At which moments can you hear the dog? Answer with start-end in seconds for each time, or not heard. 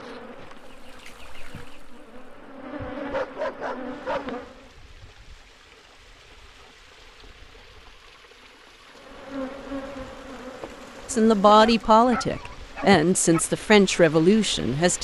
3.1-4.3, 11.4-13.4.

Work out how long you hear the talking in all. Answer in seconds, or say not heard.
4 s.